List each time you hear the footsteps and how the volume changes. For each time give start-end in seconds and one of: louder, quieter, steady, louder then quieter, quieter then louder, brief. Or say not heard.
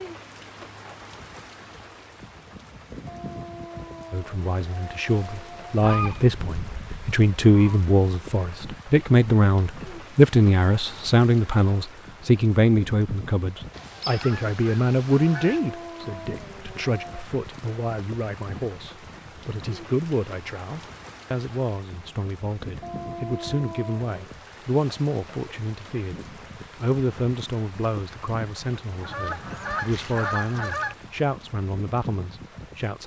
not heard.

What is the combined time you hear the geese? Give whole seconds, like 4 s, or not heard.
6 s.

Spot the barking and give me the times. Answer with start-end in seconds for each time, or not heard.
3.0-5.8, 15.4-17.2, 22.8-24.1.